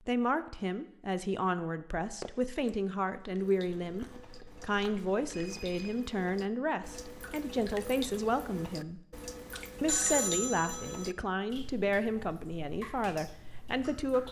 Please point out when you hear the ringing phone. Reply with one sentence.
The ringing phone can be heard from 2.2 to 2.7 s, from 5.3 to 6.0 s and from 9.6 to 11.1 s.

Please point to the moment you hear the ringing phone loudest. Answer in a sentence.
The volume of the ringing phone peaks at 10 seconds.